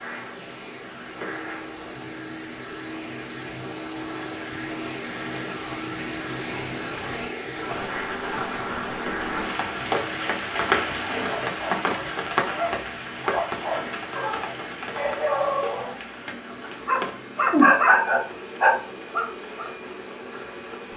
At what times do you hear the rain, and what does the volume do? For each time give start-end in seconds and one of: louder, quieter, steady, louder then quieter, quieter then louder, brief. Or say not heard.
0.1-20.9 louder then quieter.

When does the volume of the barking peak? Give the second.
18 s.